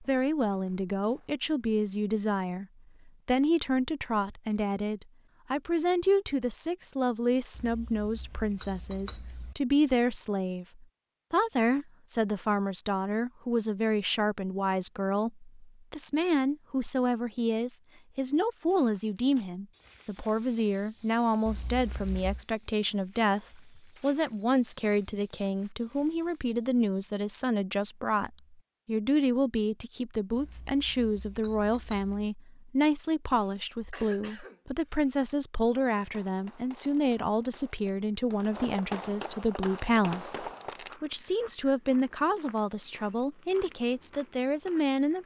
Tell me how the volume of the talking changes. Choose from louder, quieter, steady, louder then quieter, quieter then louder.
steady.